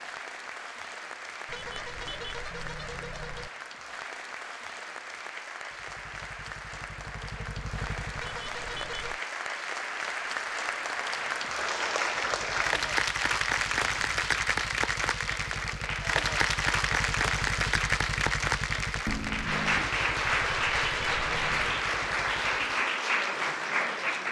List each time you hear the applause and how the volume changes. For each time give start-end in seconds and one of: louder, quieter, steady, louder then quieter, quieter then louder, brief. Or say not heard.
0.0-24.2 louder.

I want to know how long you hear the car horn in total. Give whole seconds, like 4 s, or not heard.
5 s.